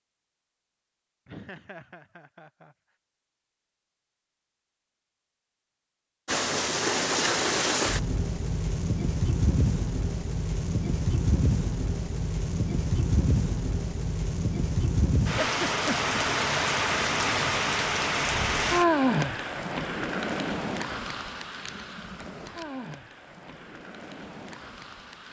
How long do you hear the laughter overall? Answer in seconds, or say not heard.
2 s.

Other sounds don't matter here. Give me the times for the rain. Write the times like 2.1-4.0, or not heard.
6.2-25.2.